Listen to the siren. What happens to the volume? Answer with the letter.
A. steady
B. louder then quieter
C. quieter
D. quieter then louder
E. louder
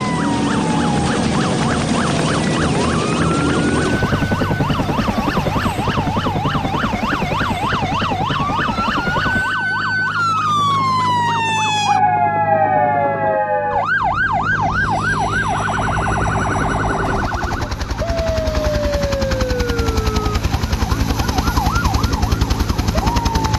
B.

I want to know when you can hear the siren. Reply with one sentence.
The siren can be heard from 0.0 to 23.5 s.